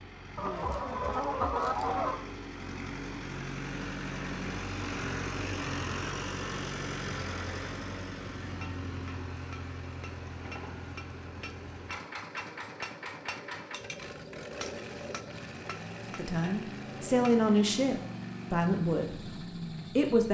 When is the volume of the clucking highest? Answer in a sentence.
The volume of the clucking peaks at 2 seconds.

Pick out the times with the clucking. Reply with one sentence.
You can hear the clucking from 0.3 to 2.2 s.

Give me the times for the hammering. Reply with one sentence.
You can hear the hammering from 8.4 to 17.4 s.